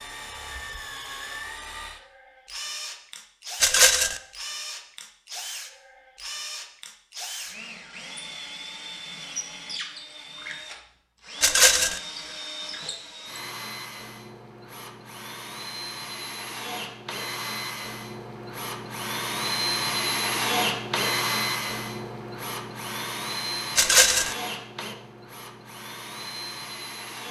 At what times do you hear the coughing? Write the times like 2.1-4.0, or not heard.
not heard.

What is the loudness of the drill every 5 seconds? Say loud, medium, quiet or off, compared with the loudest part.
medium, medium, medium, loud, loud, medium.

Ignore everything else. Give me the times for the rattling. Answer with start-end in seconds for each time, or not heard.
3.6-4.2, 11.4-12.0, 23.8-24.4.